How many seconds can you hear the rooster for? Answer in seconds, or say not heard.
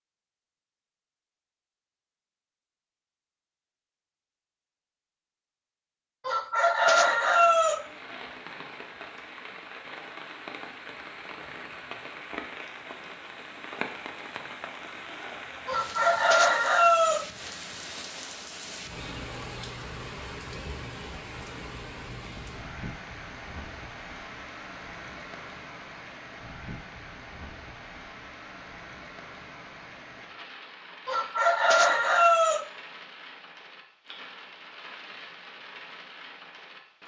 5 s.